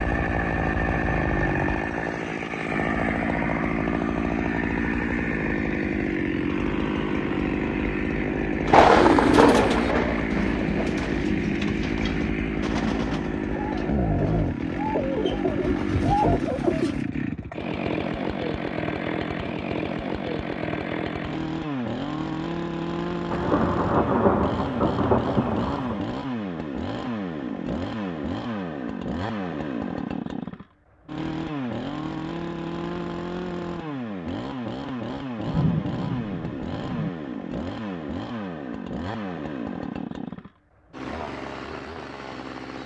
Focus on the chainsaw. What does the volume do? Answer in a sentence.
The loudness of the chainsaw goes down.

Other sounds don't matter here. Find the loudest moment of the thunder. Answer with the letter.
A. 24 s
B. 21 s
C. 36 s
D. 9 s
D.